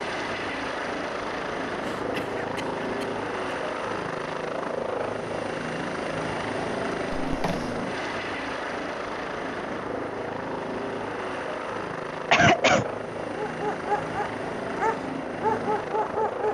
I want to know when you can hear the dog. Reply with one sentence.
The dog can be heard from 13.4 to 16.4 s.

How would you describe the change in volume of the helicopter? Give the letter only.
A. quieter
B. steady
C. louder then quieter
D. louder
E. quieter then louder
B.